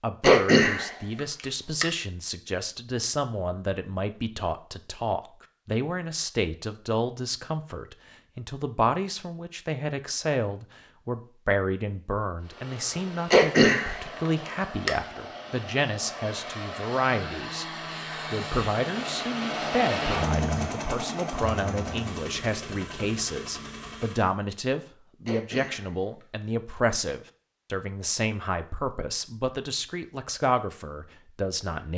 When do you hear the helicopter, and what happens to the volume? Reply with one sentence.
The helicopter can be heard from 12.4 to 24.4 s, getting louder then quieter.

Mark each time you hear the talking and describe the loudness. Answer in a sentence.
You can hear the talking from 0.0 to 17.6 s, at a steady volume; and from 18.2 to 31.9 s, at a steady volume.